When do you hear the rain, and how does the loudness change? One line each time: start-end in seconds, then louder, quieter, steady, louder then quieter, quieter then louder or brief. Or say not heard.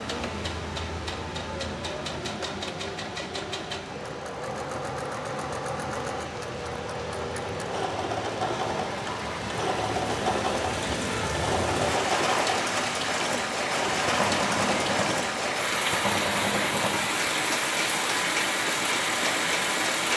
0.0-20.1 louder.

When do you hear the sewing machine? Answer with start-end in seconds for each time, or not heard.
0.0-20.1.